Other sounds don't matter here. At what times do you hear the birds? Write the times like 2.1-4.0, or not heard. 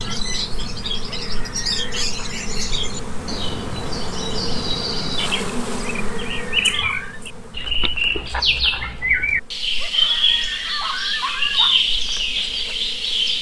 0.0-13.3.